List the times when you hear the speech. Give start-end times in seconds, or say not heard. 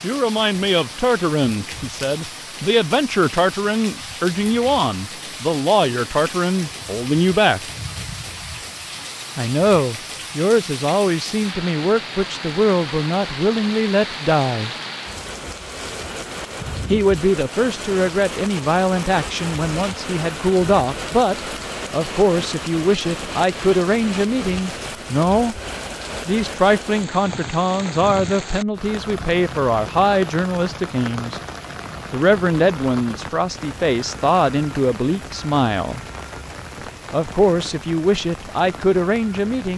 0.0-7.6, 9.3-14.7, 16.9-25.6, 26.2-31.4, 32.1-36.0, 37.1-39.7.